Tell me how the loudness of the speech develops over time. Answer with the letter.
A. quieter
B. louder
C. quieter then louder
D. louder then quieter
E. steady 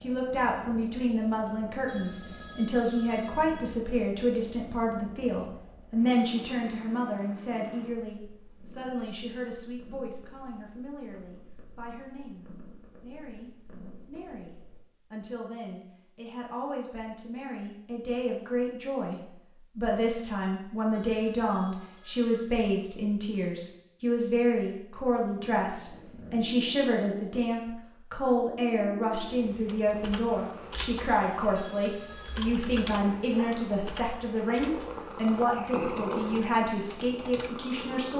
C.